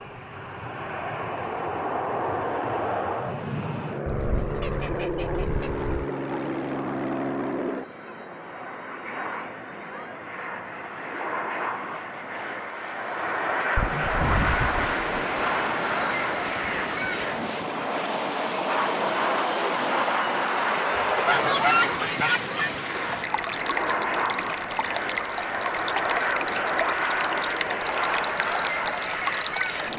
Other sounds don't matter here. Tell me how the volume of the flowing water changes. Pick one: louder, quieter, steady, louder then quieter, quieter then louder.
steady.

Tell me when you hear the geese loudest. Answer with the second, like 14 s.
22 s.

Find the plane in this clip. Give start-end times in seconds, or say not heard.
0.0-29.9.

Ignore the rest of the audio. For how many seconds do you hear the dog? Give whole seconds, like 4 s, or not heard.
not heard.